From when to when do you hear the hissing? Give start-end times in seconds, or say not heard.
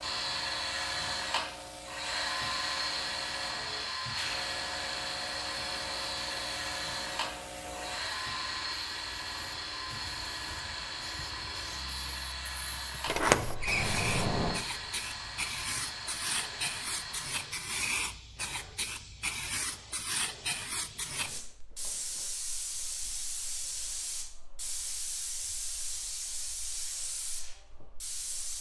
0.0-28.5.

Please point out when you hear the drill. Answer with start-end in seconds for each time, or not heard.
0.0-17.6.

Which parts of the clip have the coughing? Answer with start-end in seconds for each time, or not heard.
not heard.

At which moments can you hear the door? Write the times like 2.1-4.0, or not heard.
13.1-14.7.